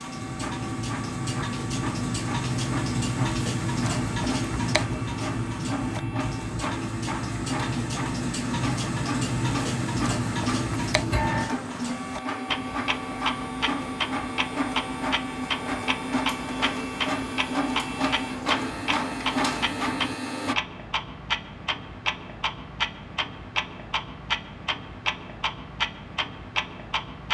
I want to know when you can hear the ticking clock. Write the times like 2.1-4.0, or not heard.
0.0-27.2.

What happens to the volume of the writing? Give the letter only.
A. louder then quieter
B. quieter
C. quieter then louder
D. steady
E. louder
D.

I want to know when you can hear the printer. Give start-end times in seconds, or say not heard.
0.0-20.6.